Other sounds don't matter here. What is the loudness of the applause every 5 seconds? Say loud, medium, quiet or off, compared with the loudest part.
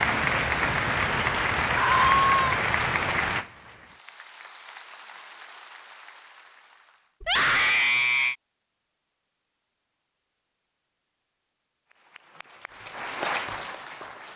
loud, quiet, medium.